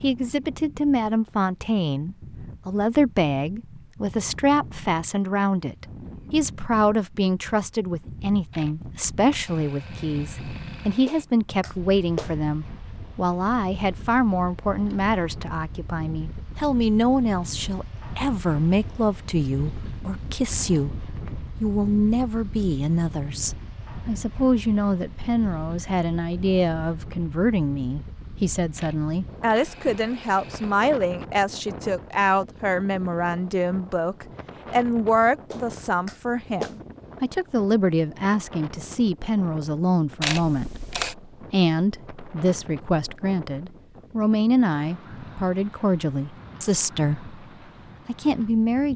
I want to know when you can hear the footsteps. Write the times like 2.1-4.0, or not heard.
not heard.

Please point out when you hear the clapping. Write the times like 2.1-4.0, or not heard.
11.1-12.3, 35.5-36.8.